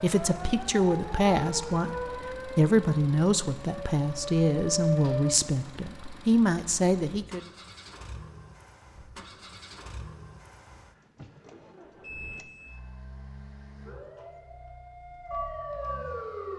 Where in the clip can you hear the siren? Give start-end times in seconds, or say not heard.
0.0-5.3, 13.8-16.5.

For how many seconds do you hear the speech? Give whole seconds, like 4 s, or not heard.
7 s.